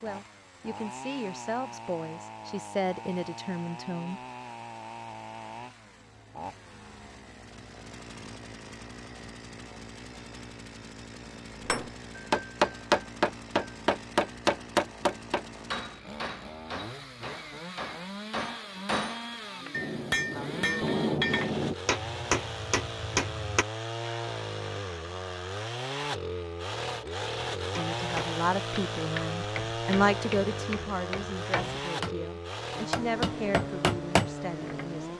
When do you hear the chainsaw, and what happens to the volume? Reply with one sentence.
The chainsaw can be heard from 0.0 to 35.1 s, getting louder.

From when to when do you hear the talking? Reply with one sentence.
The talking can be heard from 0.0 to 4.2 s and from 27.8 to 35.1 s.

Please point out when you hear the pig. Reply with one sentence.
You can't hear the pig here.